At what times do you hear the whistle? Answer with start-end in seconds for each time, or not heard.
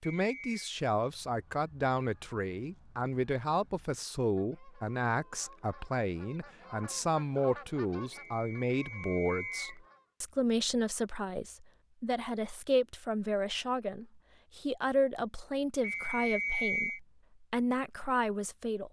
0.0-0.7, 8.1-9.8, 15.8-17.0.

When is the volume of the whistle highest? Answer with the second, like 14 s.
17 s.